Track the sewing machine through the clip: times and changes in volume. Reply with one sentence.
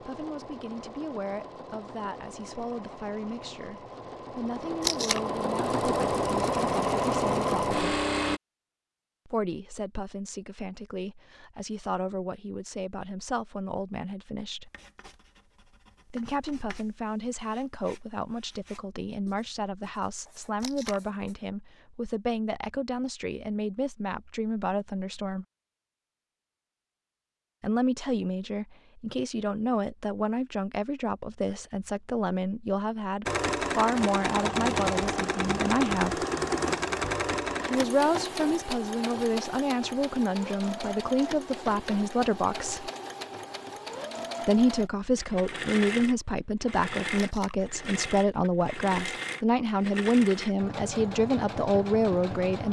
The sewing machine can be heard from 0.0 to 8.4 s, getting louder; and from 33.2 to 52.6 s, getting quieter.